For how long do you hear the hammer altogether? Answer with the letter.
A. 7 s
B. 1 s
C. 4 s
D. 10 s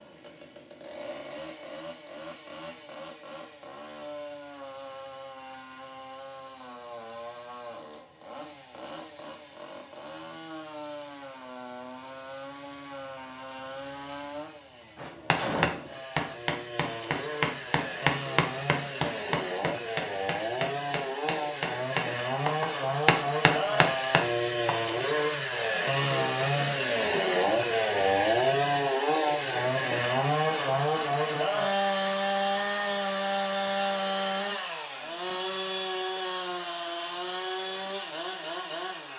D.